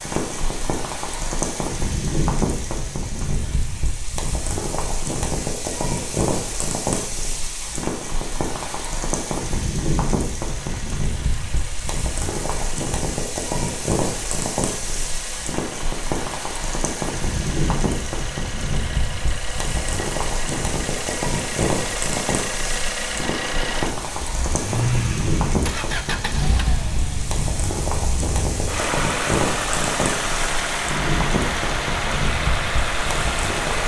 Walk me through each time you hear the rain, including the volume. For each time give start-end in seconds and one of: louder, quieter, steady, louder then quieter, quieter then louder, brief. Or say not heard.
0.0-33.8 steady.